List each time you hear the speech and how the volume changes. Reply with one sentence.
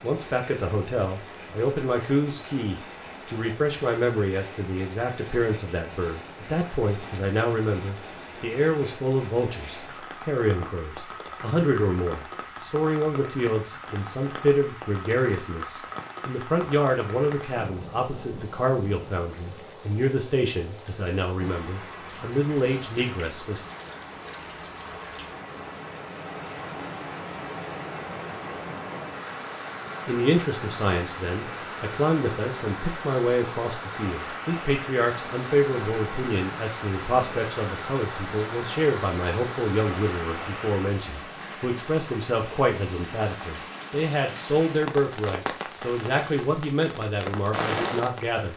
You can hear the speech from 0.0 to 23.6 s, at a steady volume; and from 30.1 to 48.5 s, at a steady volume.